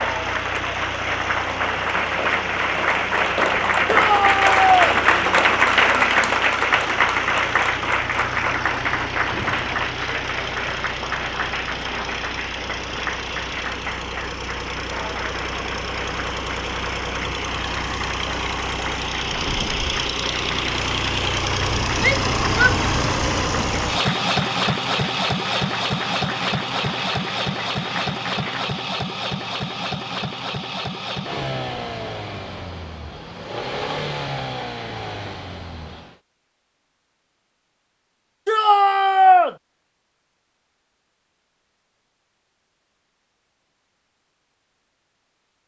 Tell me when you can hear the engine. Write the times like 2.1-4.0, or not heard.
0.0-36.2.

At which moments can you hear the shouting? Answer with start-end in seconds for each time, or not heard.
3.9-4.8, 22.0-22.8, 38.5-39.5.